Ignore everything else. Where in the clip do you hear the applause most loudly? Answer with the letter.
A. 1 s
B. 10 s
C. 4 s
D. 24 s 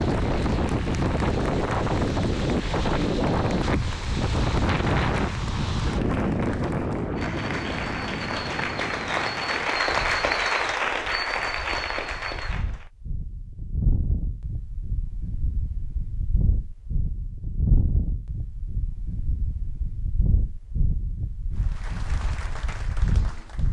B.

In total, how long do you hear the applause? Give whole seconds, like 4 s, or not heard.
15 s.